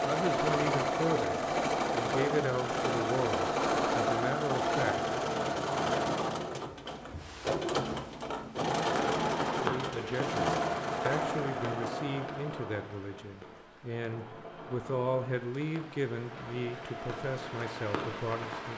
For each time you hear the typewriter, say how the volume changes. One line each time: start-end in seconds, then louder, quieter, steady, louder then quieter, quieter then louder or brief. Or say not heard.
not heard.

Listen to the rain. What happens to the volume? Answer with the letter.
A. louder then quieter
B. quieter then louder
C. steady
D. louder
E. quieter
B.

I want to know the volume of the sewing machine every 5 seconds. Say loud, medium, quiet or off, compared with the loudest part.
loud, loud, medium, quiet.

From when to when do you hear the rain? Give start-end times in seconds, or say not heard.
8.8-18.7.